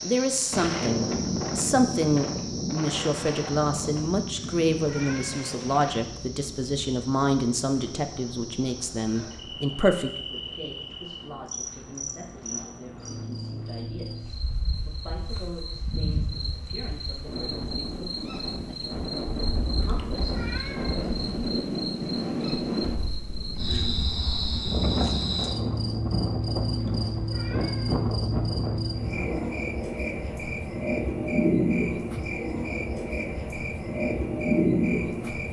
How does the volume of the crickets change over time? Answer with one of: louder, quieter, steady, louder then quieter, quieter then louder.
louder.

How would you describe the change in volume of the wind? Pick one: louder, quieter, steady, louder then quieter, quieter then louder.
quieter then louder.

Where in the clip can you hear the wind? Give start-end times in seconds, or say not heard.
0.0-29.6.